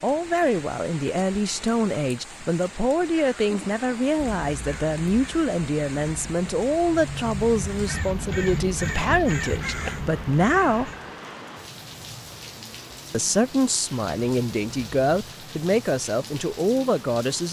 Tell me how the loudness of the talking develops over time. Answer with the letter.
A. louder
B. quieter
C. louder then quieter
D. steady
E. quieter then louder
D.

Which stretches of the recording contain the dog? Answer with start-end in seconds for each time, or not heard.
not heard.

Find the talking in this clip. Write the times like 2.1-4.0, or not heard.
0.0-10.9, 13.1-17.4.